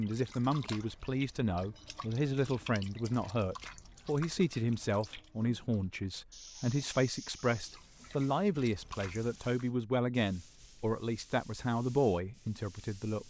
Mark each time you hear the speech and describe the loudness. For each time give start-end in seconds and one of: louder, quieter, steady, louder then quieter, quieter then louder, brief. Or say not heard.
0.0-13.2 steady.